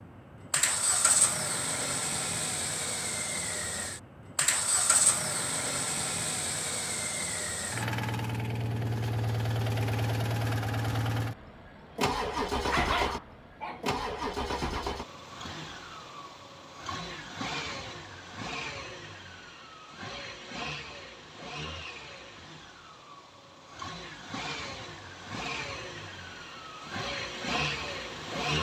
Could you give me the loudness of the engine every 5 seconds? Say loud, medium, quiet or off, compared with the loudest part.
loud, loud, loud, medium, medium, loud.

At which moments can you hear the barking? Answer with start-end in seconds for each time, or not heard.
12.7-14.0.